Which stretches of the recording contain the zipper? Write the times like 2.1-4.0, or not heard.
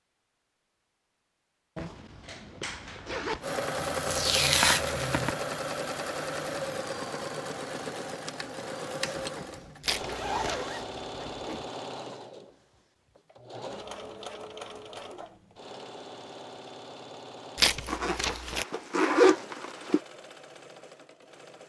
1.8-3.5, 9.0-11.7, 17.9-20.0.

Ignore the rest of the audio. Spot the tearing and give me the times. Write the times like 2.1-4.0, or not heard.
3.9-5.3, 9.8-10.7, 17.6-18.6.